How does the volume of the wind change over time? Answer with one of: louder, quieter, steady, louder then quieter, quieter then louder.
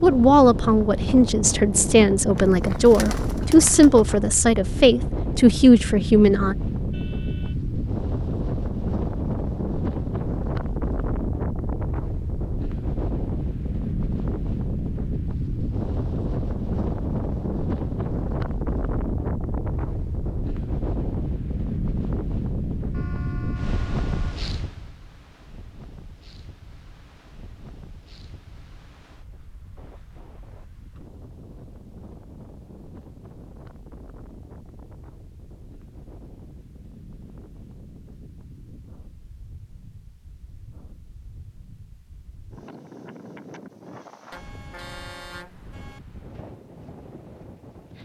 quieter.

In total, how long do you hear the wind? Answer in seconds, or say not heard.
48 s.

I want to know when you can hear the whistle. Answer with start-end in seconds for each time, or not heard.
not heard.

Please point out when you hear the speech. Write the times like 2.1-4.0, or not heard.
0.0-6.5.